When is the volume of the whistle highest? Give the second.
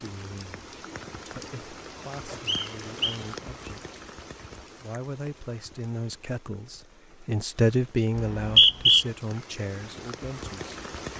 9 s.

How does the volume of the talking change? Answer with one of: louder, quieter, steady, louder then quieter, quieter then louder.
louder then quieter.